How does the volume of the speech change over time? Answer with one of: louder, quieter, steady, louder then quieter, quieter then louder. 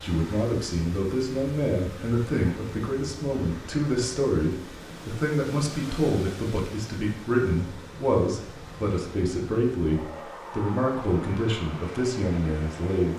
steady.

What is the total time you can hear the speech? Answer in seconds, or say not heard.
13 s.